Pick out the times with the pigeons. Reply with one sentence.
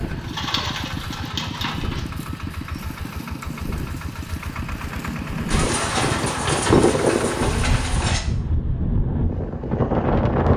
You can hear the pigeons from 0.0 to 2.0 s and from 5.5 to 8.2 s.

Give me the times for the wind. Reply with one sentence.
The wind can be heard from 0.0 to 10.5 s.